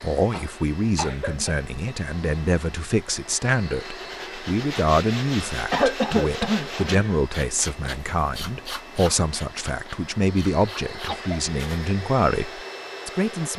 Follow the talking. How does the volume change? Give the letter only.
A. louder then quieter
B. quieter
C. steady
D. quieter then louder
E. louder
C.